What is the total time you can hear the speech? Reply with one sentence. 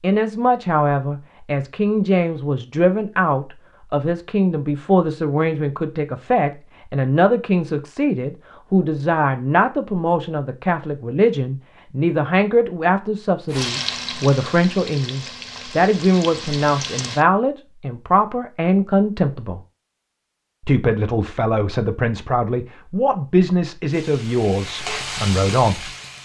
You can hear the speech for 25 seconds altogether.